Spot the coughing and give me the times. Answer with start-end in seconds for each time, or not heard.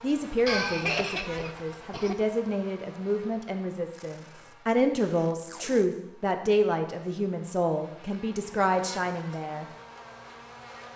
0.5-2.1.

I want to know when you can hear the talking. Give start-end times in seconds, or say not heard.
0.0-9.7.